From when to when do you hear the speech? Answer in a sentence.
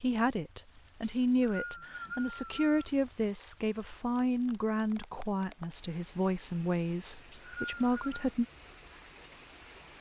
The speech can be heard from 0.0 to 8.4 s.